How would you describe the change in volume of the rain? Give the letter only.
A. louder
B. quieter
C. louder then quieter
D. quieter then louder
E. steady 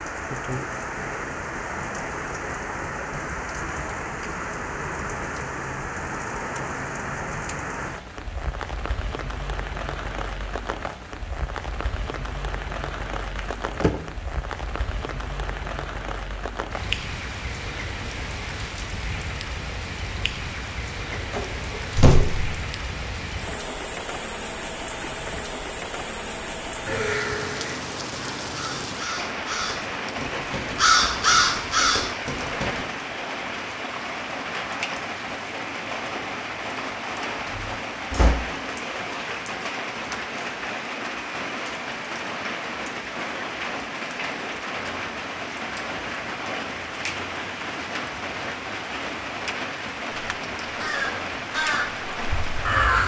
E.